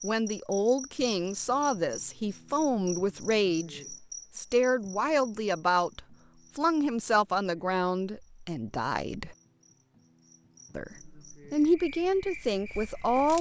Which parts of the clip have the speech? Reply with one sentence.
The speech can be heard from 0.0 to 9.3 s and from 10.8 to 13.3 s.